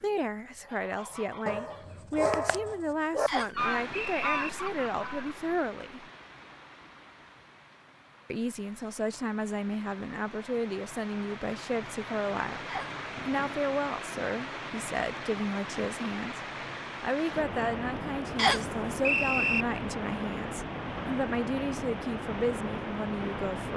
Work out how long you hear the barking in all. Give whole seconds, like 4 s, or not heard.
2 s.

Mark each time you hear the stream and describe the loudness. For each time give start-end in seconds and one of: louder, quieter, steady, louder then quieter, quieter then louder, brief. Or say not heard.
3.5-23.7 louder.